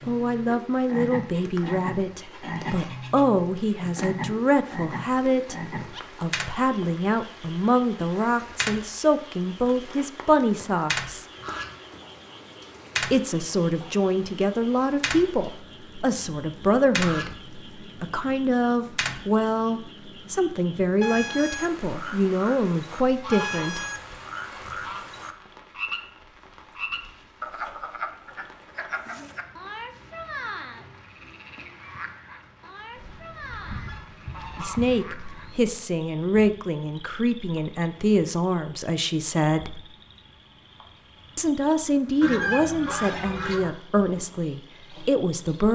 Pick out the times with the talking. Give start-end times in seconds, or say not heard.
0.1-11.2, 13.0-23.9, 34.5-39.9, 41.4-45.7.